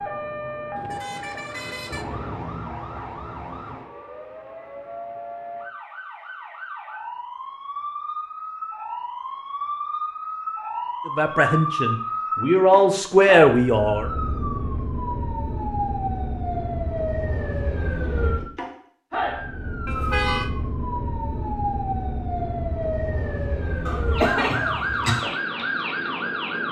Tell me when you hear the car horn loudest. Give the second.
20 s.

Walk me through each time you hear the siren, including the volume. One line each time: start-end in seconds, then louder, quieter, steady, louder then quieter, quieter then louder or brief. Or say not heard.
0.0-26.6 louder.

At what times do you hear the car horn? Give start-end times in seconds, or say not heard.
0.8-2.0, 19.9-20.5.